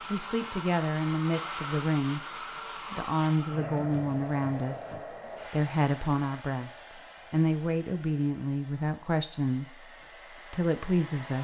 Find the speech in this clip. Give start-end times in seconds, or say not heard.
0.1-2.2, 2.9-11.3.